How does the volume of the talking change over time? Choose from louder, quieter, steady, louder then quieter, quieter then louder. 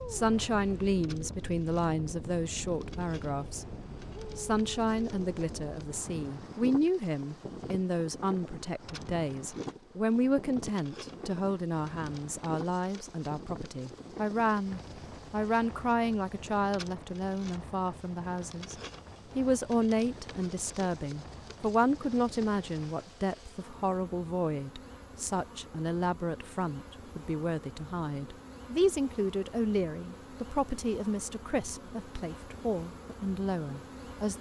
steady.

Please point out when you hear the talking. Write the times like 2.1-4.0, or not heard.
0.0-3.8, 4.3-18.8, 19.4-34.3.